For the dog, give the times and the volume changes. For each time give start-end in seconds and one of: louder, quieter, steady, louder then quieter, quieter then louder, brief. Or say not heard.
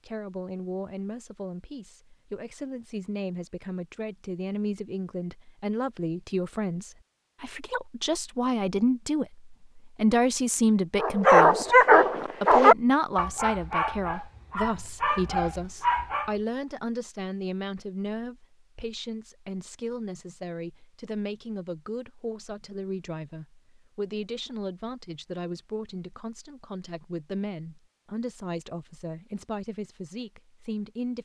11.0-16.4 quieter then louder.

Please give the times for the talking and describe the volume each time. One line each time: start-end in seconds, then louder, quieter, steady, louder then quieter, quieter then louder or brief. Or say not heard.
0.1-31.1 louder then quieter.